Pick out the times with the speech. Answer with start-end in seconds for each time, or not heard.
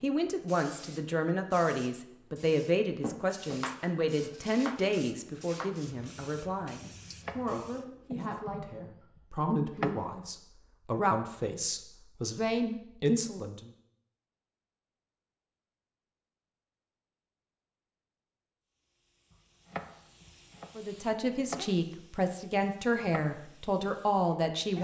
0.0-13.7, 20.8-24.7.